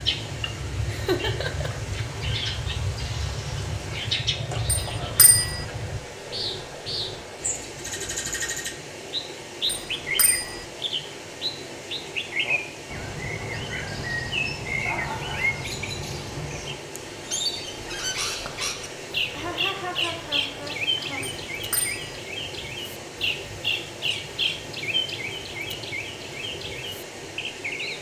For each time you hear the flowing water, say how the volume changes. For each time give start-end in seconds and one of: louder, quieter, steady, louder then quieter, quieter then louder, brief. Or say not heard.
0.0-27.9 steady.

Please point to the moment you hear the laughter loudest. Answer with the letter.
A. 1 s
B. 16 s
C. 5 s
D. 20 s
A.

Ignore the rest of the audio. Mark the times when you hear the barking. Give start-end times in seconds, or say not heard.
not heard.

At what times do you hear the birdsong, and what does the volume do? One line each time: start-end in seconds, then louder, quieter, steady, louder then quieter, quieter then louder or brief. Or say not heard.
0.0-27.9 steady.